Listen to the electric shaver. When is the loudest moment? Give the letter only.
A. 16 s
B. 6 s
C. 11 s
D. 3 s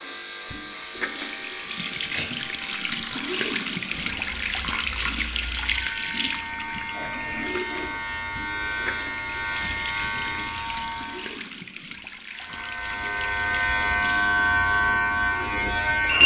A.